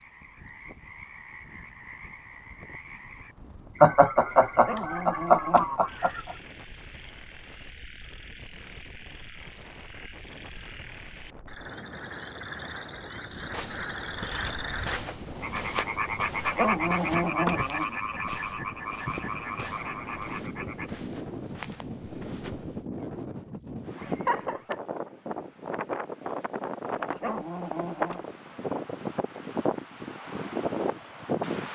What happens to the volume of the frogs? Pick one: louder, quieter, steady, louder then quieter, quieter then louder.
louder.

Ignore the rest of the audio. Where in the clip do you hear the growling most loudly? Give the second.
17 s.